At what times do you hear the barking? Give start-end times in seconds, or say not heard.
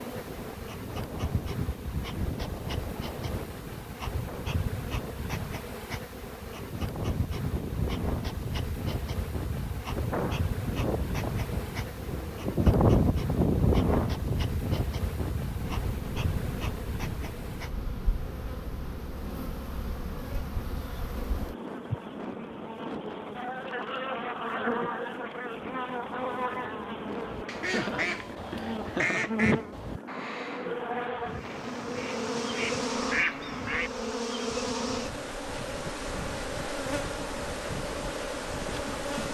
not heard.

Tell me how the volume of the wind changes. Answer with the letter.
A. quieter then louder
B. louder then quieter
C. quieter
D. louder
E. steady
B.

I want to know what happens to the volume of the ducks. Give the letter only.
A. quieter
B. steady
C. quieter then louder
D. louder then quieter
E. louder
C.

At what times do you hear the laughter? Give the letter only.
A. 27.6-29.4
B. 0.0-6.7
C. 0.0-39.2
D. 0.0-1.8
A.